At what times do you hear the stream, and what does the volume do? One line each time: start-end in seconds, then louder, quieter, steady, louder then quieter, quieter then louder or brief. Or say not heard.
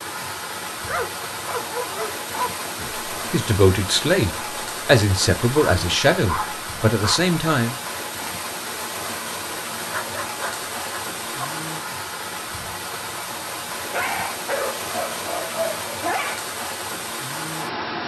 0.0-18.0 steady.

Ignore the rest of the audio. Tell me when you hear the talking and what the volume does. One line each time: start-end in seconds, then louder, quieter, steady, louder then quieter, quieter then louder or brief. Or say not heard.
2.8-7.8 steady.